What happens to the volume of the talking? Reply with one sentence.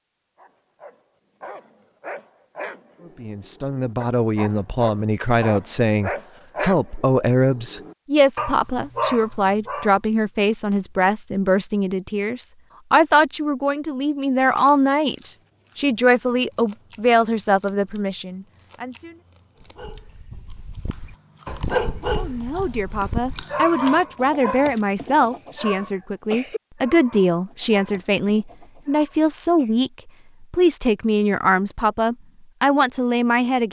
The volume of the talking stays about the same.